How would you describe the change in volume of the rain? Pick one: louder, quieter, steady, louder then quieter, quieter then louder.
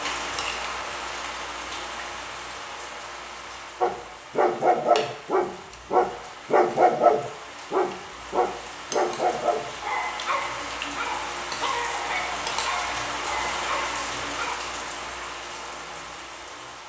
quieter then louder.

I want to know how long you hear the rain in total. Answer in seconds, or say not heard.
17 s.